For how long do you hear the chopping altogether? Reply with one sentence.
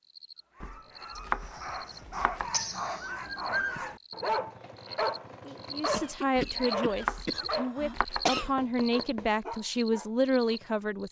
You can hear the chopping for 4 seconds altogether.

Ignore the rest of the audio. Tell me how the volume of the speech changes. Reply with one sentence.
The loudness of the speech goes down, then up.